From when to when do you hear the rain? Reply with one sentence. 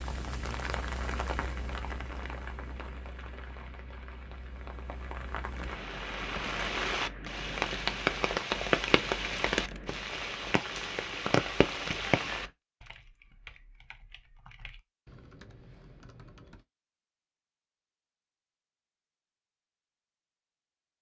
You can hear the rain from 0.0 to 12.5 s.